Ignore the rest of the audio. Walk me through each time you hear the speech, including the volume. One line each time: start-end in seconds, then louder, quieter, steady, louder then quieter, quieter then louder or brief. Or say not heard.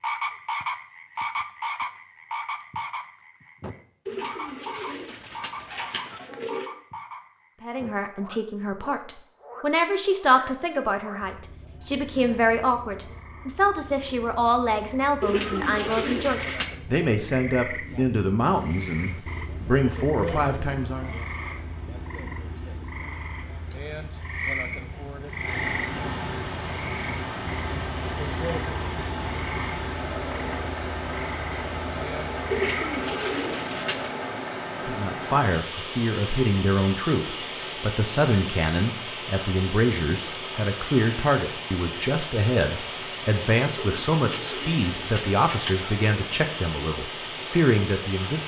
7.6-21.1 steady
34.9-48.4 steady.